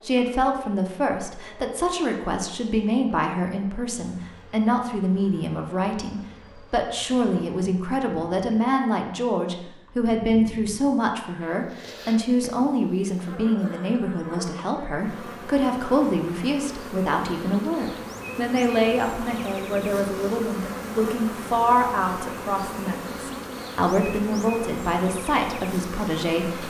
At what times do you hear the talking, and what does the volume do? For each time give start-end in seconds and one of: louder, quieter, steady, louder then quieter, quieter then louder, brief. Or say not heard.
0.1-26.6 steady.